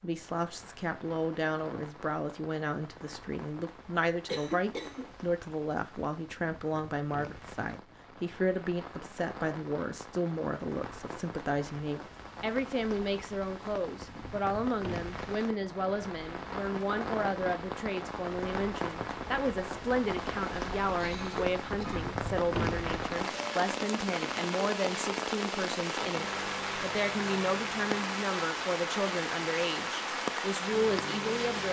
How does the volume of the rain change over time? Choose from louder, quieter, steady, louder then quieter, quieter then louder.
louder.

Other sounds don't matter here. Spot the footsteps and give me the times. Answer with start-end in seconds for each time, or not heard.
not heard.